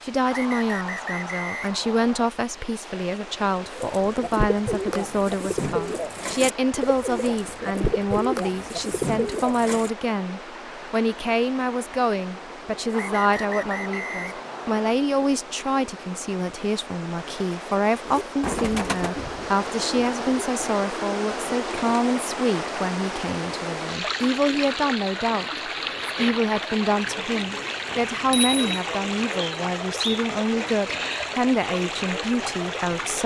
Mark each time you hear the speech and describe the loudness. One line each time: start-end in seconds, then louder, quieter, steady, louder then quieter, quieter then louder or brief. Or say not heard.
0.0-33.2 steady.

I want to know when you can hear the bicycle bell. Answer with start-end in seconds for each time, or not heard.
27.9-28.8.